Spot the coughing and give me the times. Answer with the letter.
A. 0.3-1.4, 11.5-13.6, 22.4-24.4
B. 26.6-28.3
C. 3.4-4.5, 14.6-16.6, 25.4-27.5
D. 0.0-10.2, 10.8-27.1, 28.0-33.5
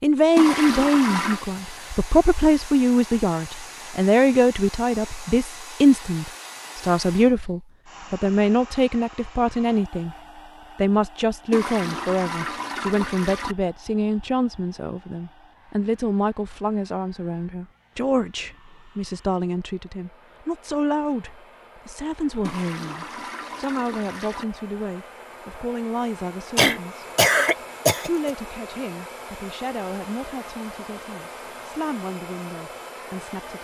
B.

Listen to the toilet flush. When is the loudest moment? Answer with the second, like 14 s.
1 s.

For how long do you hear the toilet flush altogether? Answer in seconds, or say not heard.
5 s.